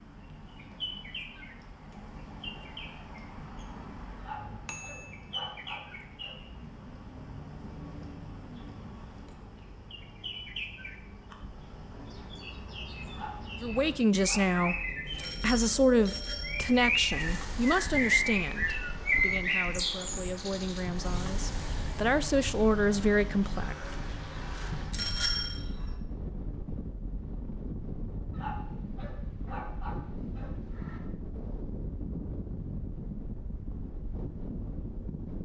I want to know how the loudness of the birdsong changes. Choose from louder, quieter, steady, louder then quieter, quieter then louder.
louder then quieter.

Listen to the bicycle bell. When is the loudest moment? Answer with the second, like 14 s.
25 s.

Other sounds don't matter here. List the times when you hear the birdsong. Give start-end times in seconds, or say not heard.
0.0-26.0.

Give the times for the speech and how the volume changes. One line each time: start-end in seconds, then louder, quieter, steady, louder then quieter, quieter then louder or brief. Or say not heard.
13.6-14.8 brief
15.4-23.8 quieter then louder.